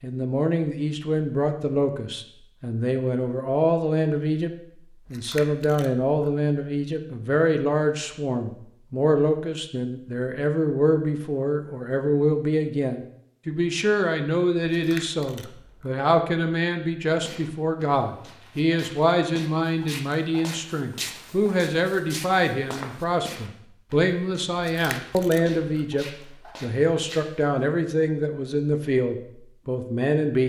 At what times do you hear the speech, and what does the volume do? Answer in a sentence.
You can hear the speech from 0.0 to 4.5 s, getting quieter then louder; and from 5.1 to 30.4 s, at a steady volume.